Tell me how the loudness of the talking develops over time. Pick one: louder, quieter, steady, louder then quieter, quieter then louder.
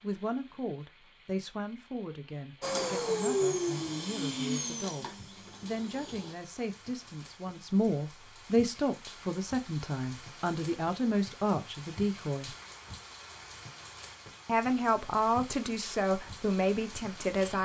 louder.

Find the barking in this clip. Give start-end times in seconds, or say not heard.
not heard.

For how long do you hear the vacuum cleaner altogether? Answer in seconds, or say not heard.
4 s.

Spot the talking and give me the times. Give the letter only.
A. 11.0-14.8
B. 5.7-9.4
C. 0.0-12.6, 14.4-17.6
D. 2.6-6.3
C.